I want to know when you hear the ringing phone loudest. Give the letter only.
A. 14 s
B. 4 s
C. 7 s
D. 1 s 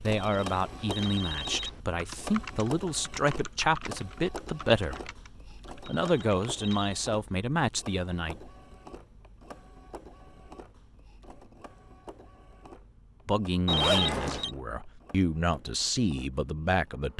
A.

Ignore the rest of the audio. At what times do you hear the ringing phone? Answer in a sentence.
You can hear the ringing phone from 0.1 to 1.8 s, from 5.8 to 7.0 s and from 13.7 to 14.5 s.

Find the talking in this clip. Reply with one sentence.
You can hear the talking from 0.0 to 5.1 s, from 5.8 to 8.3 s and from 13.2 to 17.1 s.